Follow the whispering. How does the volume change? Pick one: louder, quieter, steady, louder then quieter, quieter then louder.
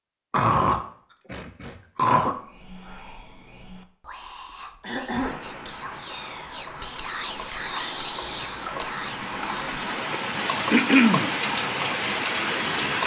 louder.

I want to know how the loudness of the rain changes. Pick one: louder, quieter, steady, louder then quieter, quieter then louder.
louder.